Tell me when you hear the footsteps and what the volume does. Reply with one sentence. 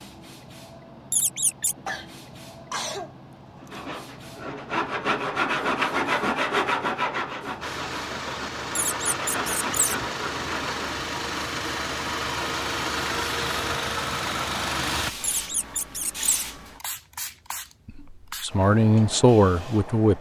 You can't hear the footsteps here.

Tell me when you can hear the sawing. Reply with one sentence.
You can hear the sawing from 3.5 to 11.1 s.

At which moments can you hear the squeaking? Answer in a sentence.
The squeaking can be heard from 1.1 to 1.8 s, from 8.8 to 9.9 s and from 15.2 to 16.4 s.